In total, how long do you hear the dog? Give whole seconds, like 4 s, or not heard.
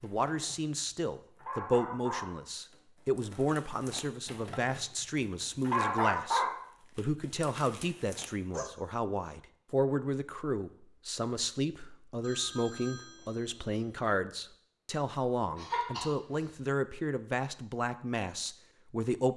9 s.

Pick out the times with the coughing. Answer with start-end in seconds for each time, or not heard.
15.6-16.6.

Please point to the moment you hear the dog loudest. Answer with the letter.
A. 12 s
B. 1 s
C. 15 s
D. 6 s
D.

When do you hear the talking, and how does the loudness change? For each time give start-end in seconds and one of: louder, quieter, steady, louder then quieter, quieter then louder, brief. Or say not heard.
0.0-19.3 steady.